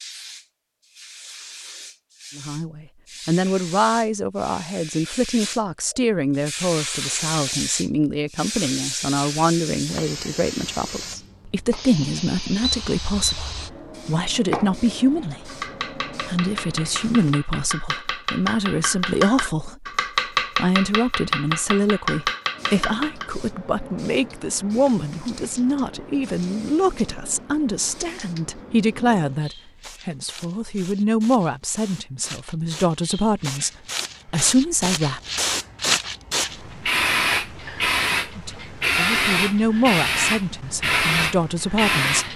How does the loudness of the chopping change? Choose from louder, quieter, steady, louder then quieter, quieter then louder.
louder.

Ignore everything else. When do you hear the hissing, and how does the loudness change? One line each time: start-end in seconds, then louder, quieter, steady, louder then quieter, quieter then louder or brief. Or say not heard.
0.0-17.4 louder then quieter
22.5-42.3 louder.